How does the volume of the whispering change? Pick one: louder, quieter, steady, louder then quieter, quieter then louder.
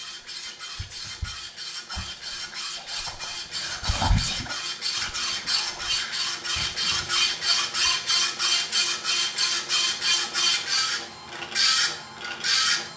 louder then quieter.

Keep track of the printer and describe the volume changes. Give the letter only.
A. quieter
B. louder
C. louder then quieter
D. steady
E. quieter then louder
B.